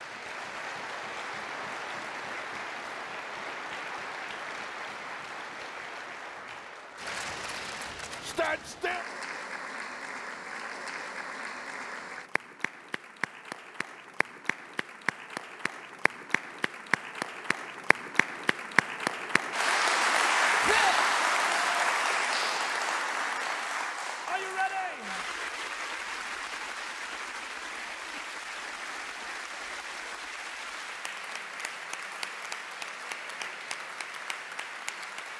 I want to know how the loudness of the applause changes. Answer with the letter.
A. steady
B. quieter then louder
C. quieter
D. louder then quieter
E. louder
D.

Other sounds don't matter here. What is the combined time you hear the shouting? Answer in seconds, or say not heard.
2 s.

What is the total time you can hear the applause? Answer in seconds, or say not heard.
35 s.